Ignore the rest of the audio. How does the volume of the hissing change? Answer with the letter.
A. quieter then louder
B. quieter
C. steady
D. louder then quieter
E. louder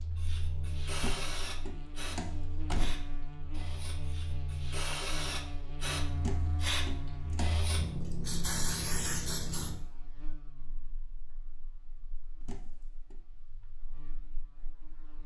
A.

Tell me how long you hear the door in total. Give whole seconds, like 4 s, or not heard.
4 s.